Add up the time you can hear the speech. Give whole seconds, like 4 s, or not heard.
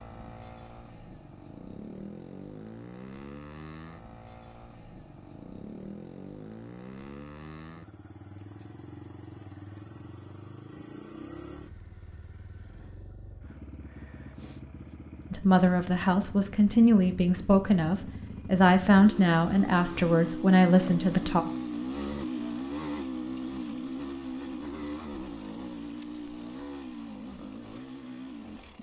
6 s.